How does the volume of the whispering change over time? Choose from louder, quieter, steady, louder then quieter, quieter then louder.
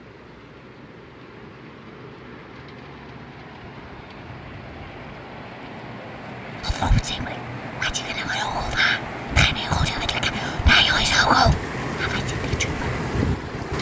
louder.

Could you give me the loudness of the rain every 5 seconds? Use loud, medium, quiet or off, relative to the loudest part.
quiet, medium, loud.